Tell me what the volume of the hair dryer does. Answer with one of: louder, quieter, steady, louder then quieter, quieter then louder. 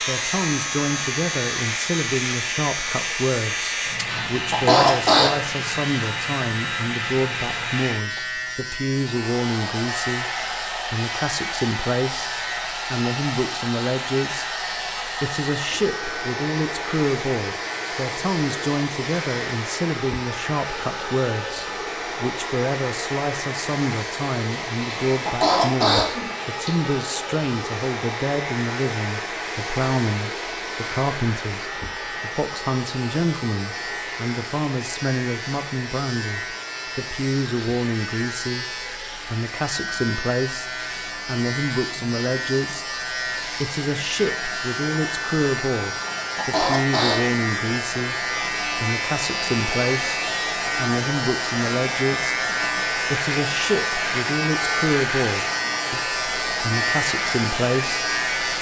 quieter then louder.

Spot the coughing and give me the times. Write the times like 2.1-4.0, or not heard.
4.0-5.3, 24.8-26.7, 46.1-47.4.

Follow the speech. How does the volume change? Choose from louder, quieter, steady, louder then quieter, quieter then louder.
steady.